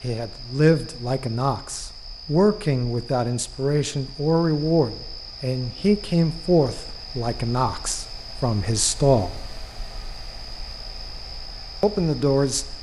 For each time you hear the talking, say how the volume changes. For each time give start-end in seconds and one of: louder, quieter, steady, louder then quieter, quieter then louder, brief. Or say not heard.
0.0-9.5 steady
11.8-12.7 brief.